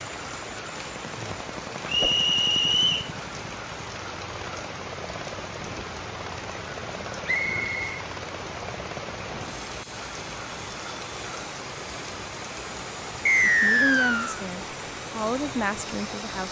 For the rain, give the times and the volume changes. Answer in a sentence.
The rain can be heard from 0.0 to 16.4 s, at a steady volume.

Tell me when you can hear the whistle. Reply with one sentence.
The whistle can be heard from 1.9 to 3.1 s, from 7.2 to 8.0 s and from 13.2 to 14.3 s.